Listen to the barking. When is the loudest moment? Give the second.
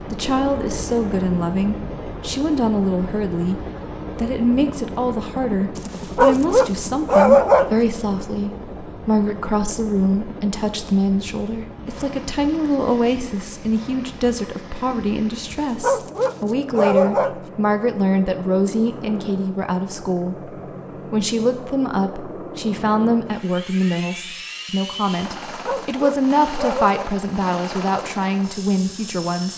7 s.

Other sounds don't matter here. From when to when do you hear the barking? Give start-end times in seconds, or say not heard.
6.2-7.8, 15.8-17.4, 25.6-26.9.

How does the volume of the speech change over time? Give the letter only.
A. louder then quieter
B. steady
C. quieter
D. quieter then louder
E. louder
B.